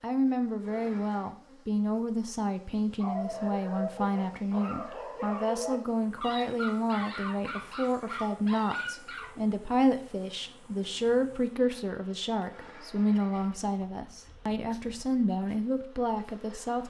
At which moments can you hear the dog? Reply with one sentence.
You can hear the dog from 3.0 to 9.5 s.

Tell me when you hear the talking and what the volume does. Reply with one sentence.
The talking can be heard from 0.0 to 16.8 s, at a steady volume.